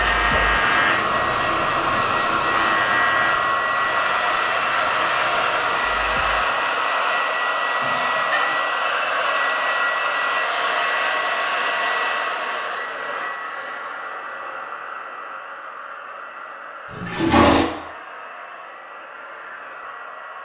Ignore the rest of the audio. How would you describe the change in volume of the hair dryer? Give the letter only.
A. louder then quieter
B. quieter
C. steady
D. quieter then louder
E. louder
B.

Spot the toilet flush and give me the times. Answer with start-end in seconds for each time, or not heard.
7.8-8.6, 16.9-17.6.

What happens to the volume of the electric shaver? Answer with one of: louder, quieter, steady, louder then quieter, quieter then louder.
quieter.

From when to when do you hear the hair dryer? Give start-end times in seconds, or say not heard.
0.0-20.3.